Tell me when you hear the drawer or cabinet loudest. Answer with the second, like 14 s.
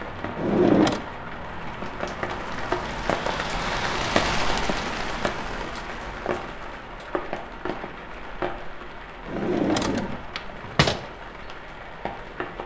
1 s.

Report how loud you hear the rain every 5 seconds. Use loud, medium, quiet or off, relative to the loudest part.
loud, medium, medium.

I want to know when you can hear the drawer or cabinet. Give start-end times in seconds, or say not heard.
0.3-1.1, 9.2-11.0.